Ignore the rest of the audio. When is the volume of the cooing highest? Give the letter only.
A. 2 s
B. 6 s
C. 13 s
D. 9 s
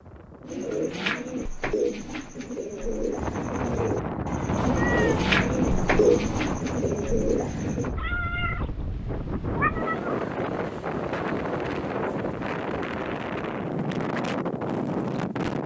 B.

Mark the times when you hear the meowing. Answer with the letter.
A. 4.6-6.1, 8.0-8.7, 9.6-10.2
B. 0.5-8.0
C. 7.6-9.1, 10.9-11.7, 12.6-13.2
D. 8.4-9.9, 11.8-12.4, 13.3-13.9
A.